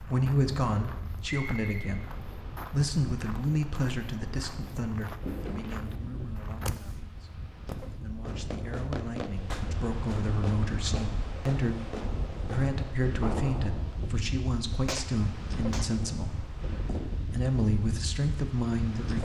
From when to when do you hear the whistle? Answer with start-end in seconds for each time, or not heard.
1.2-2.0.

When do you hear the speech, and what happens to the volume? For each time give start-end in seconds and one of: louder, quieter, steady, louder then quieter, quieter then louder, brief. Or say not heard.
0.0-19.2 quieter then louder.